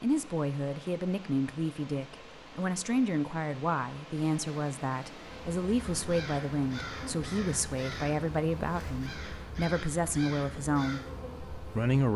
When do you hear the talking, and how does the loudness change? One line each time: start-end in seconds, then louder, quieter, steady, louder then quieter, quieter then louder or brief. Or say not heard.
0.0-12.1 steady.